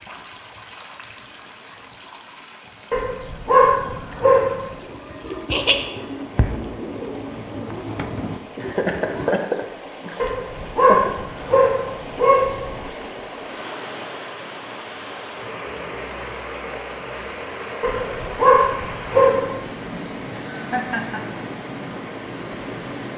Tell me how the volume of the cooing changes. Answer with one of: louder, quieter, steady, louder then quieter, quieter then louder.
louder.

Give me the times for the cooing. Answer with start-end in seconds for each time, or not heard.
3.8-9.3.